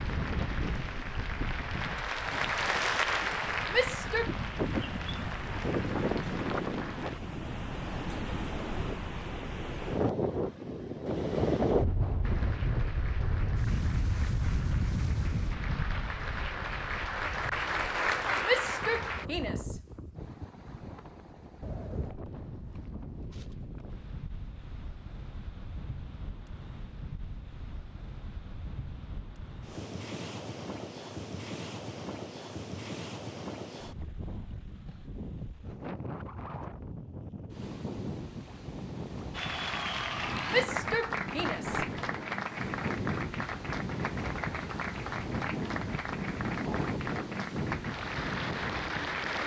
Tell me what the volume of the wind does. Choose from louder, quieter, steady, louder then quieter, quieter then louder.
quieter then louder.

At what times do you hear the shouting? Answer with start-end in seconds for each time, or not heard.
3.7-4.3, 18.4-19.8, 40.5-41.9.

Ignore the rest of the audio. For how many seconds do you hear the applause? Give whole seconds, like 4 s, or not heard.
24 s.